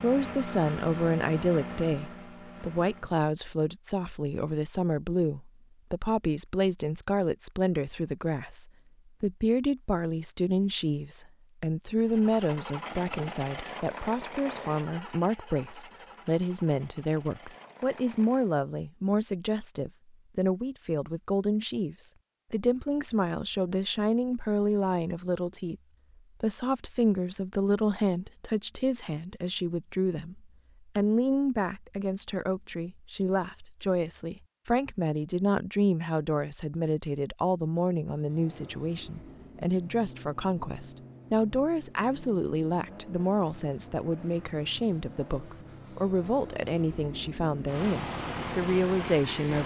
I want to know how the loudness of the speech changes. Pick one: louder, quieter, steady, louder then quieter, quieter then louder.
steady.